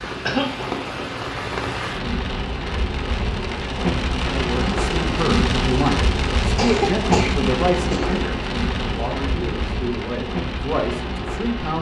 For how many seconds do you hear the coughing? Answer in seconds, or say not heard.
2 s.